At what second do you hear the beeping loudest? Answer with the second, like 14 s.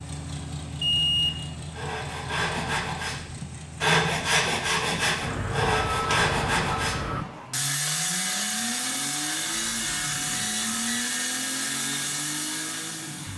1 s.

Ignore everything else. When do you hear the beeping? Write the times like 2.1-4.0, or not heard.
0.8-1.4, 5.2-7.2, 9.5-11.1.